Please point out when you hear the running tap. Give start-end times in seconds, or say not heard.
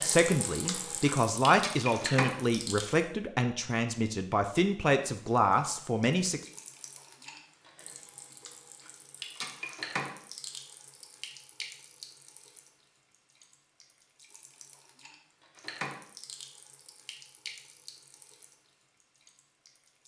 0.0-3.0, 5.3-20.0.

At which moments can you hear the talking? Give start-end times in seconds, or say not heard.
0.0-6.4.